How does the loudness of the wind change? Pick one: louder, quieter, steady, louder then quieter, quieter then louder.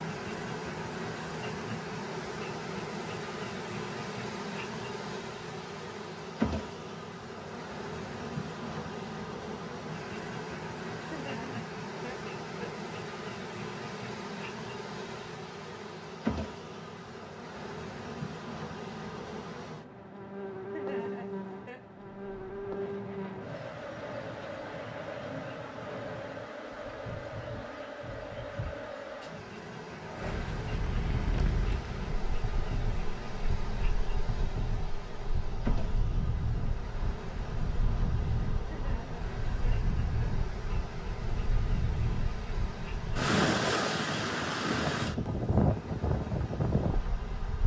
louder.